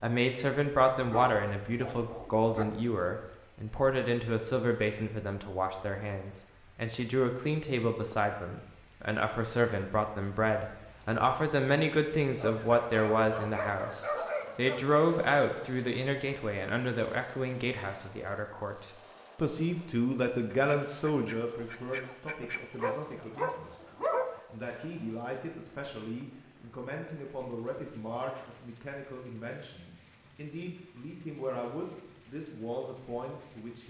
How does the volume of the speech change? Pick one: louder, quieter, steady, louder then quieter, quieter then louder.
quieter.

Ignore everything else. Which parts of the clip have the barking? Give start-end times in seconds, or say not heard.
1.0-2.7, 12.3-15.1, 22.8-24.4.